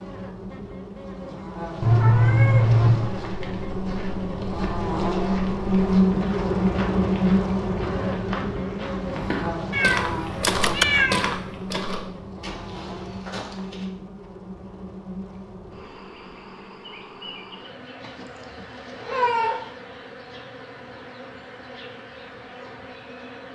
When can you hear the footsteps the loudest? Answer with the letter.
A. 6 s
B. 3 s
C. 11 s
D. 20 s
C.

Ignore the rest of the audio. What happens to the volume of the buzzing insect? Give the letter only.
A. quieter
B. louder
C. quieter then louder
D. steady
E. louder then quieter
E.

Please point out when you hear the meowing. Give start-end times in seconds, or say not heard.
1.8-3.1, 9.7-11.3, 18.0-19.6.